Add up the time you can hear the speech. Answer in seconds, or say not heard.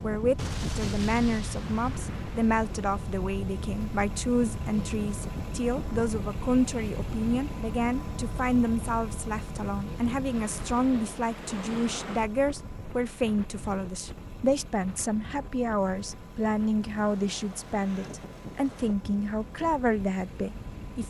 21 s.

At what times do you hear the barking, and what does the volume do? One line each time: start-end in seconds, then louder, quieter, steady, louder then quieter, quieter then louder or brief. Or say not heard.
not heard.